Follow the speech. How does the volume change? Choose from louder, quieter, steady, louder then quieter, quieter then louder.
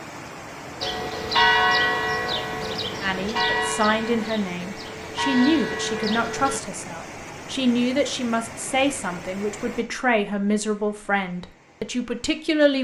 steady.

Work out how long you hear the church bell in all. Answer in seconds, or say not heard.
6 s.